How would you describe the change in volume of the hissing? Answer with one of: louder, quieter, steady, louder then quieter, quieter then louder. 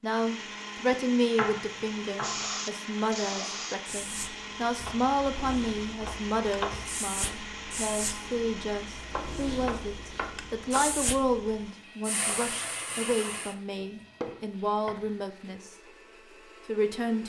quieter then louder.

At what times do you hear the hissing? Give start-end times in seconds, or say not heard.
2.2-13.6.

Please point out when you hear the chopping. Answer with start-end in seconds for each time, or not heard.
1.4-2.5, 4.8-7.0, 9.1-10.9, 13.8-15.1.